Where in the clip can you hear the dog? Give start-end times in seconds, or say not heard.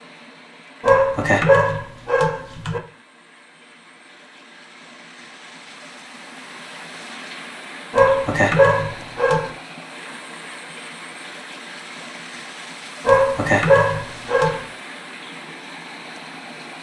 0.8-2.8, 8.0-9.5, 13.1-14.7.